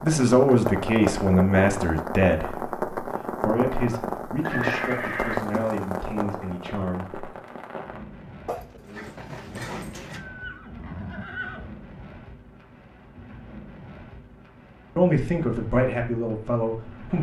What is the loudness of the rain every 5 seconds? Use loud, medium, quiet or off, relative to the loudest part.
loud, medium, quiet, quiet.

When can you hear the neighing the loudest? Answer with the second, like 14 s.
5 s.